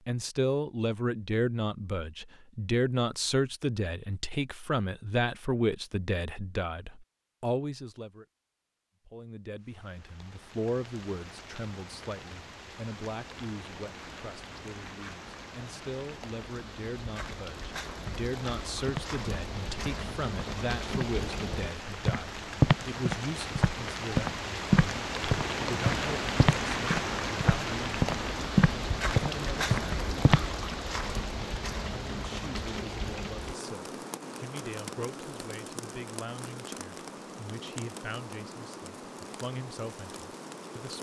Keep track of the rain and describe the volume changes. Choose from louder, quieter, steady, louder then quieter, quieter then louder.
louder then quieter.